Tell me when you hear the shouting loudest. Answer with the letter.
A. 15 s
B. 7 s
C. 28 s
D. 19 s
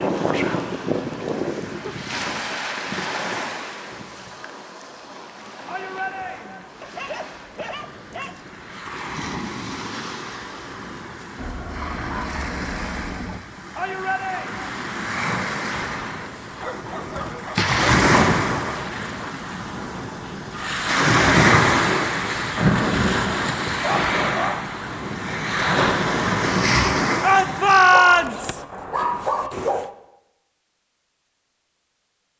C.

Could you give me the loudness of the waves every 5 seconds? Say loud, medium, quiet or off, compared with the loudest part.
medium, quiet, quiet, loud, loud, loud, off.